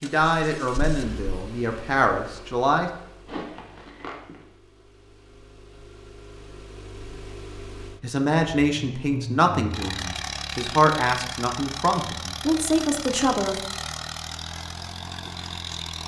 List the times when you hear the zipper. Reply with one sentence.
The zipper can be heard from 3.2 to 4.5 s.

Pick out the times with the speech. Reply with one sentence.
The speech can be heard from 0.0 to 2.9 s and from 8.0 to 13.6 s.